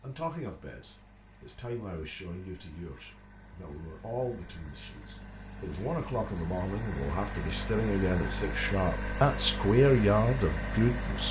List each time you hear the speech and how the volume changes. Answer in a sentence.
The speech can be heard from 0.0 to 11.2 s, getting louder.